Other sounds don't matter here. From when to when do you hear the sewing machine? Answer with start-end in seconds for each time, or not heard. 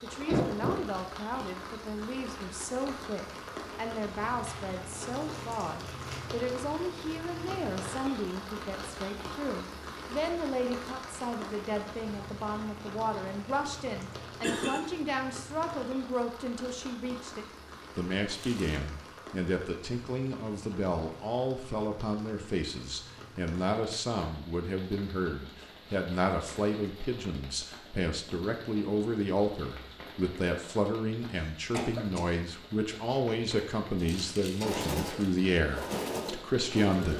34.5-37.1.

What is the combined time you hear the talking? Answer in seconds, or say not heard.
37 s.